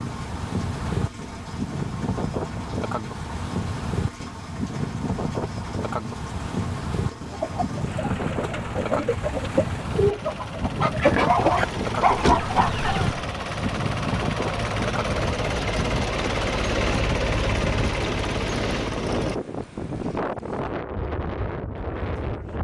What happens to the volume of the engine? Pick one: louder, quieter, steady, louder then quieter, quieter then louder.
louder.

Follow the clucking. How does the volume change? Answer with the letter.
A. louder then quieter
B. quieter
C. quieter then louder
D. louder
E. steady
A.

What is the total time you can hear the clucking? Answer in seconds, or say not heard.
6 s.